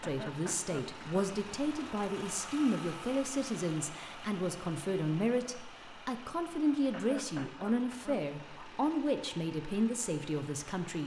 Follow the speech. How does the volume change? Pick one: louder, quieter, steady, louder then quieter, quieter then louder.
steady.